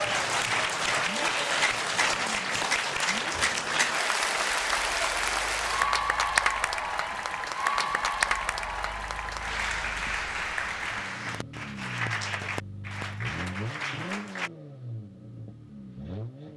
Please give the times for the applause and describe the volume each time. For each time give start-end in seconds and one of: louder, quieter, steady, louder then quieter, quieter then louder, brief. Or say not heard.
0.0-14.5 quieter.